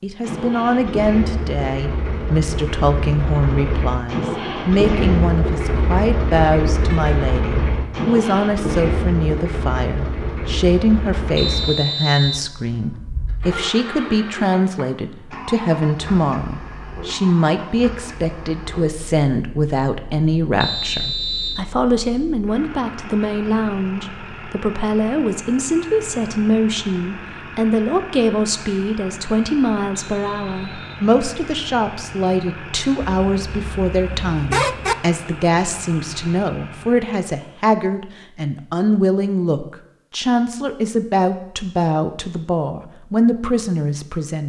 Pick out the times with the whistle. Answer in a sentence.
You can hear the whistle from 11.3 to 12.4 s, from 20.6 to 21.6 s and from 29.9 to 31.1 s.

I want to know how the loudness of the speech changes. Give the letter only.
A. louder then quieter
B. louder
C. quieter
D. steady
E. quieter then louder
D.